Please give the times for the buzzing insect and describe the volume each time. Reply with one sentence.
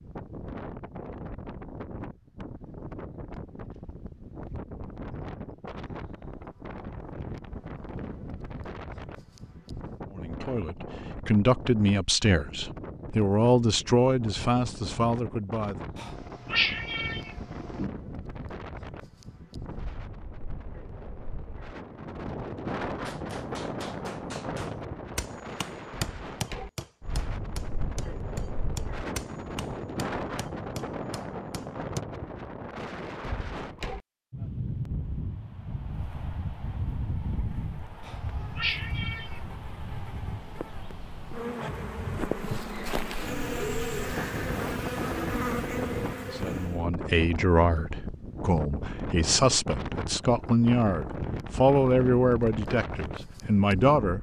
The buzzing insect can be heard from 35.9 to 46.9 s, getting louder.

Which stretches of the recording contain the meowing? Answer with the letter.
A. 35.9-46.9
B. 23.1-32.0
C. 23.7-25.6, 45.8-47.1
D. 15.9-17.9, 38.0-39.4
D.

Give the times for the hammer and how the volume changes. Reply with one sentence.
The hammer can be heard from 23.1 to 32.0 s, getting louder then quieter.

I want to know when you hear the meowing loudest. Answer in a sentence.
The loudest moment of the meowing is at 17 seconds.